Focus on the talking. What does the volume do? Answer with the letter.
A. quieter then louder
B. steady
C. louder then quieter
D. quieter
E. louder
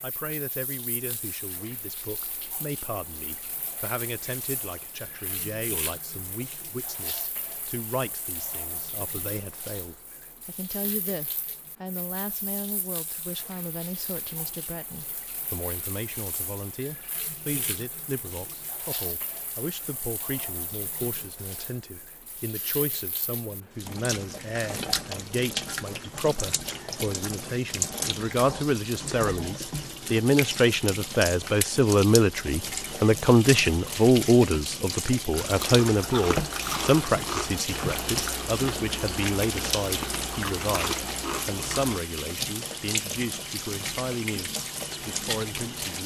C.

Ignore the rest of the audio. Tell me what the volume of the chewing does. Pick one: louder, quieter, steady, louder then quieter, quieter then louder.
steady.